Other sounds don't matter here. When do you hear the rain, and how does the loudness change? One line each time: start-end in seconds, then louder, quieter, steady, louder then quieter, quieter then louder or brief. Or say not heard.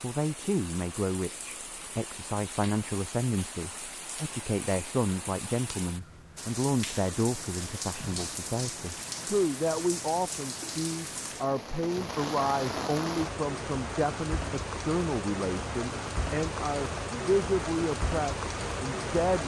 0.0-19.4 louder.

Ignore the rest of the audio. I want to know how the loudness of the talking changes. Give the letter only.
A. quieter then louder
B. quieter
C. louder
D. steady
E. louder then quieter
D.